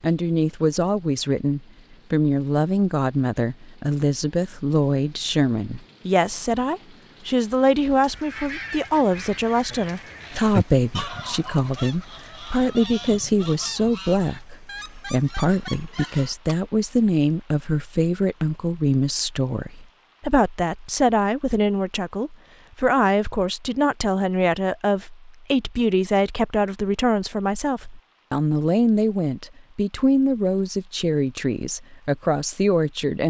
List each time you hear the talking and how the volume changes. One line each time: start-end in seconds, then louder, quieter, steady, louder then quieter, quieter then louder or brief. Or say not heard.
0.0-33.2 steady.